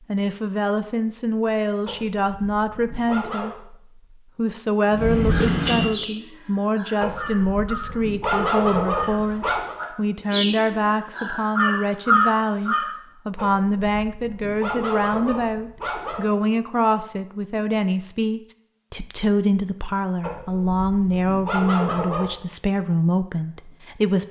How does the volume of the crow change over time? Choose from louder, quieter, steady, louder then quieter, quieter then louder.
quieter then louder.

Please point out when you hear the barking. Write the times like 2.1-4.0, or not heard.
1.9-3.5, 7.0-9.8, 13.3-16.3, 20.2-22.4.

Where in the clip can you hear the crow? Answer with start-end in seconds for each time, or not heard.
4.9-12.9.